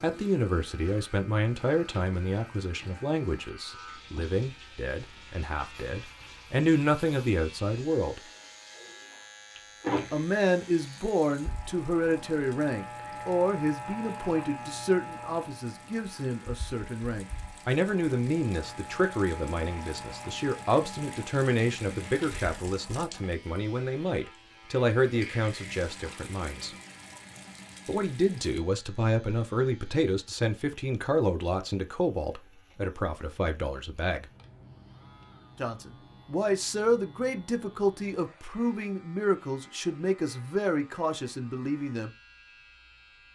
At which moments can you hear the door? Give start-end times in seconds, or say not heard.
9.6-10.7.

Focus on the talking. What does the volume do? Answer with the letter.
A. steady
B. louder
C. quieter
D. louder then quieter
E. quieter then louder
A.